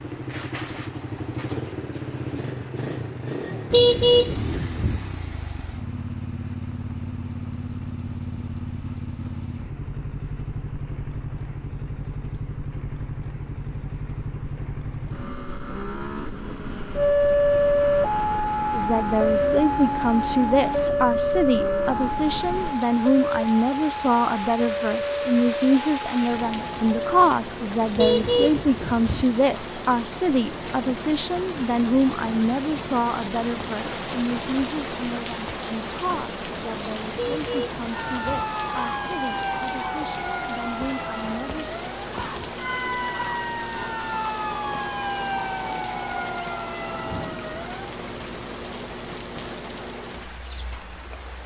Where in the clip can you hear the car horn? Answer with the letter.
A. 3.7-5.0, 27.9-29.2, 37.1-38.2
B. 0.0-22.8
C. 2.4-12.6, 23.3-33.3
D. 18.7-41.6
A.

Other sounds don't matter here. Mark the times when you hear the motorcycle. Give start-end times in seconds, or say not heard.
0.0-22.8.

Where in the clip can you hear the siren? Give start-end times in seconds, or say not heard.
16.9-27.2, 37.9-47.9.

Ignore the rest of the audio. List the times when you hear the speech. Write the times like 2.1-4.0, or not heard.
18.7-41.6.